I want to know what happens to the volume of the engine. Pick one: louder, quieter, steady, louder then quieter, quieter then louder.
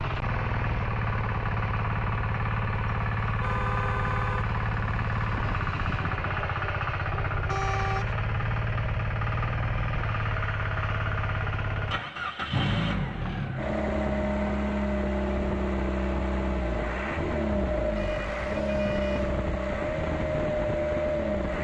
steady.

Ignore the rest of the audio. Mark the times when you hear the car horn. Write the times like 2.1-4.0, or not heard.
3.4-4.5, 7.5-8.2, 17.9-19.4.